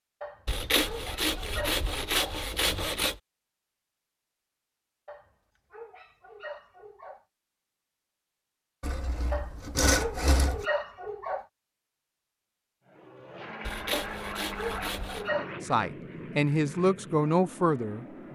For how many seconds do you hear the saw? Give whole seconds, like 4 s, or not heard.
6 s.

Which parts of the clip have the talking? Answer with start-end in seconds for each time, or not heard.
15.6-18.2.